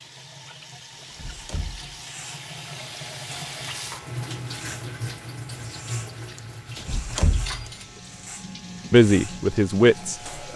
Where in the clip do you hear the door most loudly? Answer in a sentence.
The volume of the door peaks at 7 seconds.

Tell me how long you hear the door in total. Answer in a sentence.
You can hear the door for 2 seconds altogether.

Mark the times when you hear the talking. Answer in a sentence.
You can hear the talking from 8.9 to 10.5 s.